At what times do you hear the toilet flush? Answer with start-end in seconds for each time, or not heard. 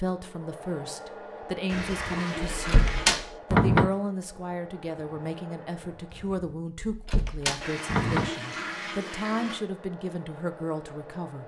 1.6-3.1, 7.6-9.6.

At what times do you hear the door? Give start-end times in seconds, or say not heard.
1.7-3.9, 6.1-8.3.